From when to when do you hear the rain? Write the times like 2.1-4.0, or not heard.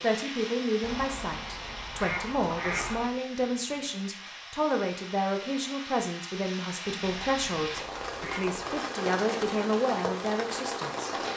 0.0-11.3.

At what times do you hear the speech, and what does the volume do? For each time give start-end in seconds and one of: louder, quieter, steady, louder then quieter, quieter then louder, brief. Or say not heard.
0.0-11.2 steady.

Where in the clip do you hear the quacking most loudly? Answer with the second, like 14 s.
3 s.